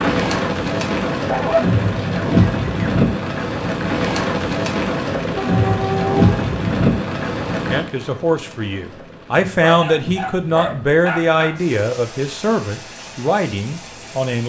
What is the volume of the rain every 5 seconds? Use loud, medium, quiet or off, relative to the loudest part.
loud, loud, quiet.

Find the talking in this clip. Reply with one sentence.
The talking can be heard from 7.7 to 14.4 s.